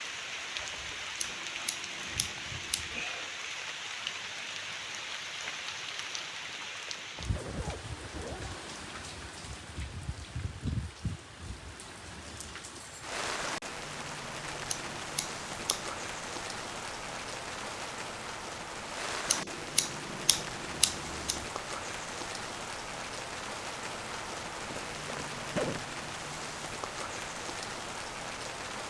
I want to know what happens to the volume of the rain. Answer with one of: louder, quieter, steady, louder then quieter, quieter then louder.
steady.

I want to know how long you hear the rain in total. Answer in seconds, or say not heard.
29 s.